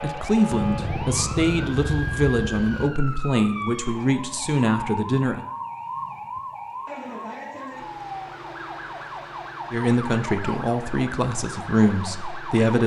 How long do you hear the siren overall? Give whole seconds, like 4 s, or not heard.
13 s.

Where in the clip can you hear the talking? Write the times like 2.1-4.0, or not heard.
0.0-5.5, 9.7-12.8.